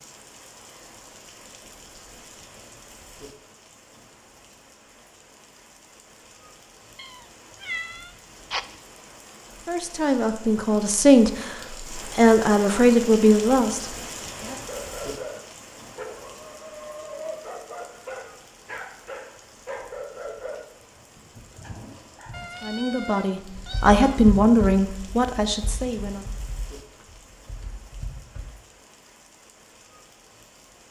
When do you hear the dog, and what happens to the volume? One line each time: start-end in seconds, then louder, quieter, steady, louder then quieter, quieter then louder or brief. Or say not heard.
14.4-22.4 quieter.